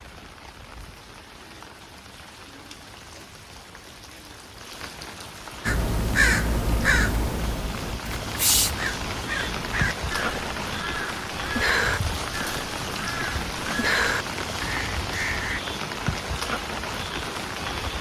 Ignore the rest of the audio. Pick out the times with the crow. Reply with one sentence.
You can hear the crow from 5.7 to 15.6 s.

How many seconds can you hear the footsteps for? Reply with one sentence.
You can't hear the footsteps here.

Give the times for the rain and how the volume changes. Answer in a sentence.
The rain can be heard from 0.0 to 17.9 s, getting louder.